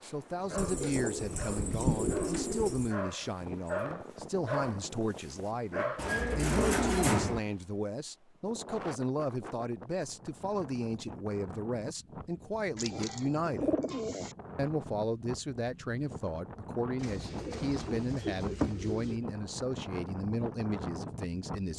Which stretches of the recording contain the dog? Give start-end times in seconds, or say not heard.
0.0-6.8.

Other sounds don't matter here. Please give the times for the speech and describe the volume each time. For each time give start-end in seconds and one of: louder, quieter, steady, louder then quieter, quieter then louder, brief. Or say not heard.
0.0-13.8 steady
14.6-21.7 steady.